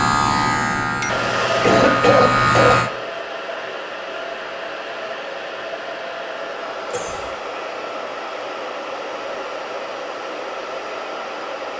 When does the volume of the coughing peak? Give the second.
2 s.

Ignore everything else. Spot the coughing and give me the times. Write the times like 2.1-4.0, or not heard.
1.6-2.8, 6.9-7.3.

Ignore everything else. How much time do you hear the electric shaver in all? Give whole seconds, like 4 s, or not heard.
3 s.